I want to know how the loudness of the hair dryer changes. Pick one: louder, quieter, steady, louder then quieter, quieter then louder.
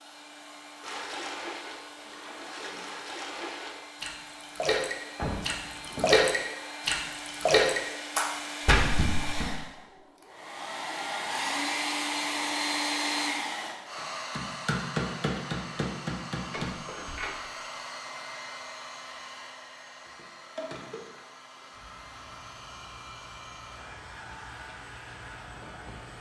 louder then quieter.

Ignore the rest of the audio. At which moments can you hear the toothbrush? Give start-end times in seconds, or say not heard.
not heard.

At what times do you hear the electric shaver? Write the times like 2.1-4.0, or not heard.
21.7-26.1.